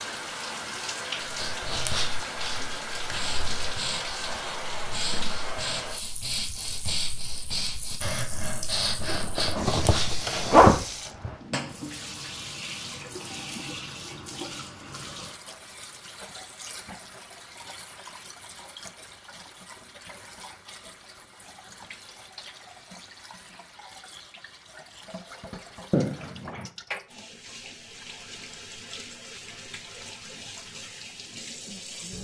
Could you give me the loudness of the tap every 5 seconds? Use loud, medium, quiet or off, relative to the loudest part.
loud, loud, loud, medium, quiet, medium, medium.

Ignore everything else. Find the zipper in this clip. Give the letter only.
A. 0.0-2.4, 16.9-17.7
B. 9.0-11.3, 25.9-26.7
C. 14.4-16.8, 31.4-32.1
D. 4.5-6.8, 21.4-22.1
B.